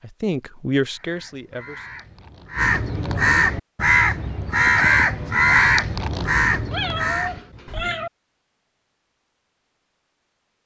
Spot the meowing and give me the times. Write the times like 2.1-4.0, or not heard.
6.7-8.1.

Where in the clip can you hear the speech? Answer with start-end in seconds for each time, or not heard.
0.0-1.9.